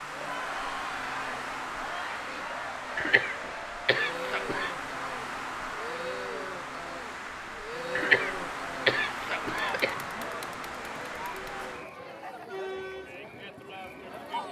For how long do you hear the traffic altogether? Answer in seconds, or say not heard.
12 s.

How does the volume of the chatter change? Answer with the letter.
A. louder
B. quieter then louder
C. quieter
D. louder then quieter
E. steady
E.